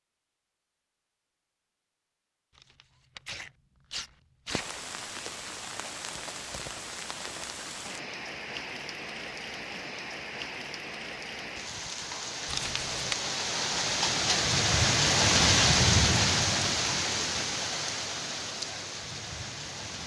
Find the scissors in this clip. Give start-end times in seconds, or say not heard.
not heard.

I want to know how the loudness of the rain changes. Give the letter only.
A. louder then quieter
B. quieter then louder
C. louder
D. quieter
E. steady
A.